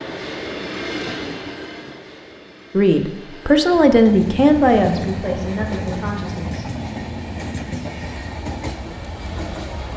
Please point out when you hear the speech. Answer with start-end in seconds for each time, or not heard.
2.7-6.7.